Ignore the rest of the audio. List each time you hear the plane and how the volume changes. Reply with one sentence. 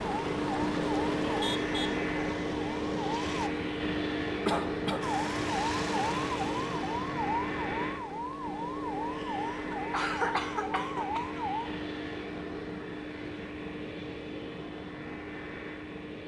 The plane can be heard from 0.0 to 16.2 s, getting quieter.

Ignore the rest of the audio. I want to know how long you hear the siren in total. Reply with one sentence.
The siren can be heard for 10 seconds in total.